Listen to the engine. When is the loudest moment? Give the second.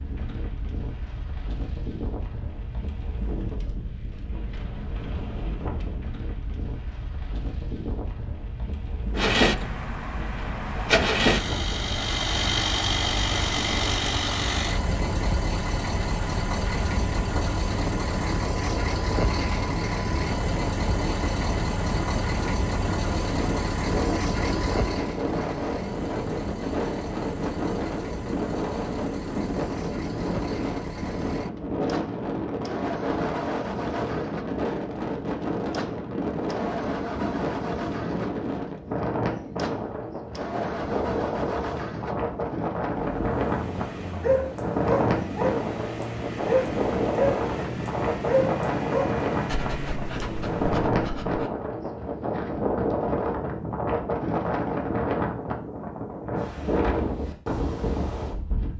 11 s.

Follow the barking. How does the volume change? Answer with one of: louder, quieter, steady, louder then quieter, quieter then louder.
quieter.